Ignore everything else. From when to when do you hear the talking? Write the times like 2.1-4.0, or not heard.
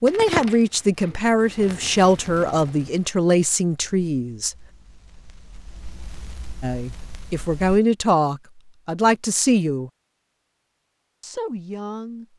0.0-4.5, 6.6-9.9, 11.2-12.3.